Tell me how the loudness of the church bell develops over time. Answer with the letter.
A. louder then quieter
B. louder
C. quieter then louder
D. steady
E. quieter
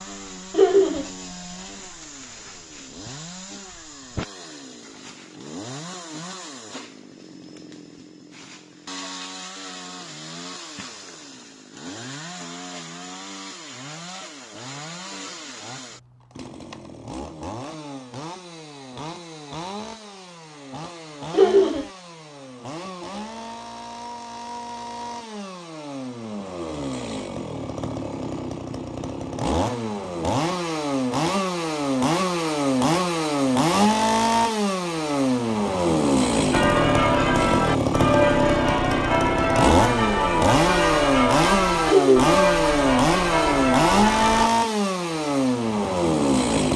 D.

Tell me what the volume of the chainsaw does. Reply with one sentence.
The loudness of the chainsaw goes up.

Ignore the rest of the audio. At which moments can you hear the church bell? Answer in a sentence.
You can hear the church bell from 36.5 to 44.5 s.